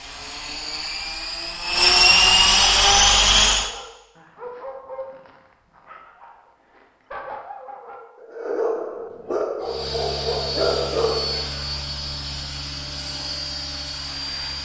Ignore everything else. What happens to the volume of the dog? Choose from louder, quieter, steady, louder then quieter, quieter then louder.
quieter then louder.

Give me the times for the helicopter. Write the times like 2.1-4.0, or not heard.
0.0-3.7, 9.6-14.5.